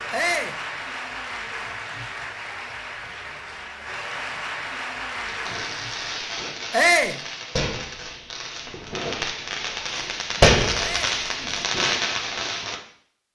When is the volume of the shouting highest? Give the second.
7 s.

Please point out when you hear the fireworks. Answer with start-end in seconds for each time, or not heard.
5.2-12.8.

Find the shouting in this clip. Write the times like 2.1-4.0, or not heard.
0.1-0.6, 6.7-7.2, 10.8-11.2.